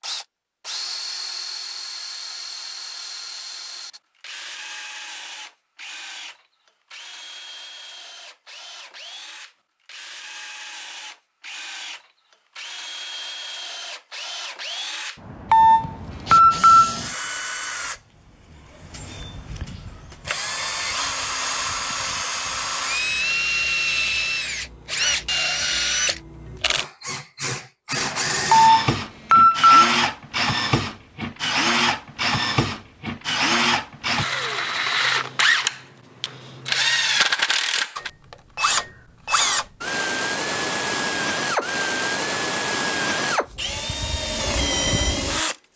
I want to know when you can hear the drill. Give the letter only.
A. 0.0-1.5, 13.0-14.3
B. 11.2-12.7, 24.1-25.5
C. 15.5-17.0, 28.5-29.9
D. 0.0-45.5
D.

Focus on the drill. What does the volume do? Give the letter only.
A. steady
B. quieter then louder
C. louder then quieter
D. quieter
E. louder
E.